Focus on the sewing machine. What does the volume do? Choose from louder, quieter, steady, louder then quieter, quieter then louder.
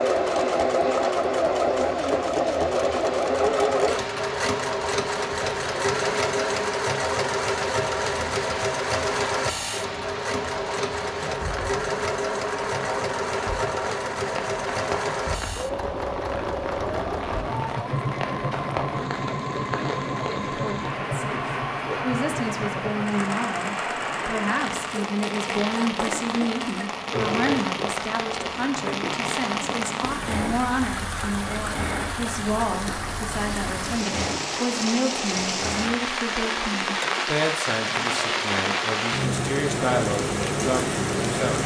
quieter.